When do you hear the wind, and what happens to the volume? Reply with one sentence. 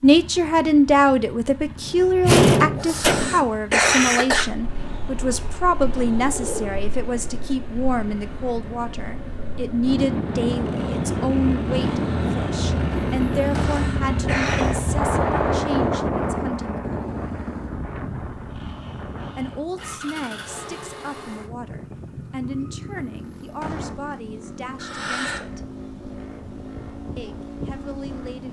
You can hear the wind from 4.2 to 28.4 s, getting louder then quieter.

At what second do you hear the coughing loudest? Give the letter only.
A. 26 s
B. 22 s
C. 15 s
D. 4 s
D.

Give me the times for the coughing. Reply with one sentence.
The coughing can be heard from 2.8 to 4.5 s, from 13.6 to 14.8 s and from 24.8 to 25.4 s.